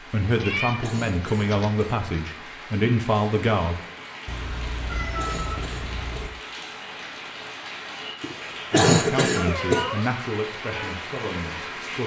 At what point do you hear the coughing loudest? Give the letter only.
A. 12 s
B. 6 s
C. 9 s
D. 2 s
C.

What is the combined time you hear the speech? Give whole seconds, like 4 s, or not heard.
7 s.